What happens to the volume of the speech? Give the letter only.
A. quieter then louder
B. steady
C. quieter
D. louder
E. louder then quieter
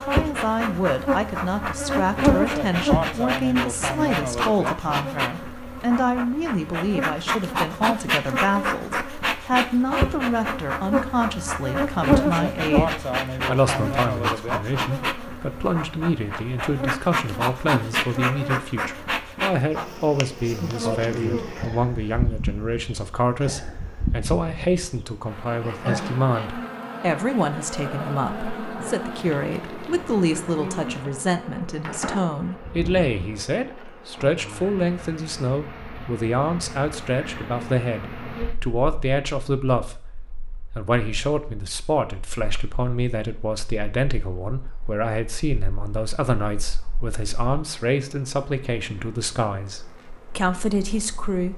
B.